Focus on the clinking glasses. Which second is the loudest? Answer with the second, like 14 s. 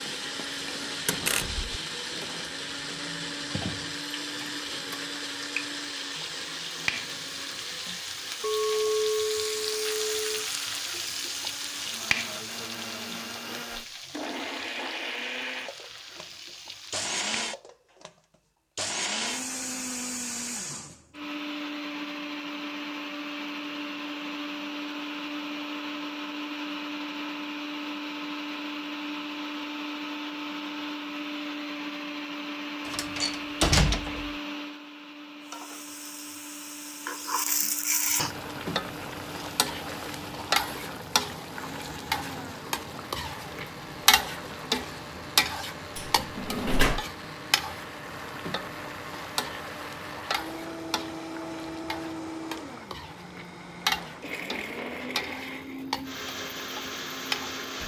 9 s.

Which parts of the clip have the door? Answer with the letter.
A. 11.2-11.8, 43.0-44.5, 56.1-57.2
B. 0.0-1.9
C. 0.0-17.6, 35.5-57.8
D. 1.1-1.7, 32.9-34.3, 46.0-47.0
D.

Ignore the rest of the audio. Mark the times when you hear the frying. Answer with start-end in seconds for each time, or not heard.
0.0-17.6, 35.5-57.8.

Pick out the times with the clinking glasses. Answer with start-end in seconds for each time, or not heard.
8.4-10.2.